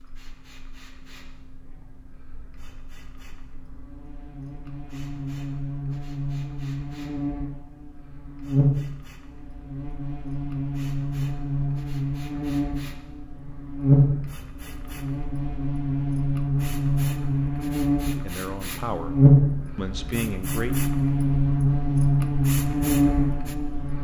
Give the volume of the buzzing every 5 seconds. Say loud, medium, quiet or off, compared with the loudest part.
quiet, medium, loud, loud, loud.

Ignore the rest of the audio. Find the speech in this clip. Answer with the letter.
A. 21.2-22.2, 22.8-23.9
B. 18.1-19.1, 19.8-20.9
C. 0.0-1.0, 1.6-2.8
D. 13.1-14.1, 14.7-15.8
B.